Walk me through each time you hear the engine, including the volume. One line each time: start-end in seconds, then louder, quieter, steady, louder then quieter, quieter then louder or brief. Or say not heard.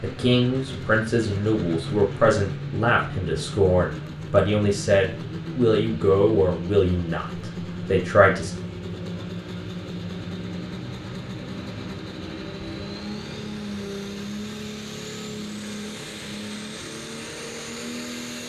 0.0-18.4 steady.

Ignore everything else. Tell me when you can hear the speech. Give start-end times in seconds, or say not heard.
0.0-8.5.